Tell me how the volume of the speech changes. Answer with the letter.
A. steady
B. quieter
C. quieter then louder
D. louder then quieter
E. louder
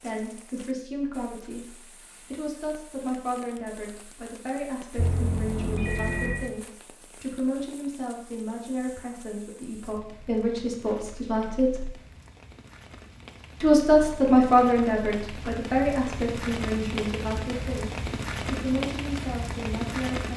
D.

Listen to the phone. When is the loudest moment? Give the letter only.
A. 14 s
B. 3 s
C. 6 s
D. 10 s
C.